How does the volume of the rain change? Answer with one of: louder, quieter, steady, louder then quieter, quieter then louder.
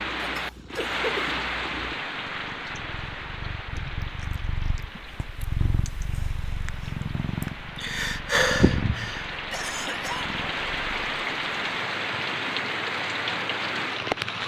quieter then louder.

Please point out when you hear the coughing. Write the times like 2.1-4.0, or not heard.
0.3-1.3, 9.3-10.3.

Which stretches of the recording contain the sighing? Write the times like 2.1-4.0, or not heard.
7.4-9.2.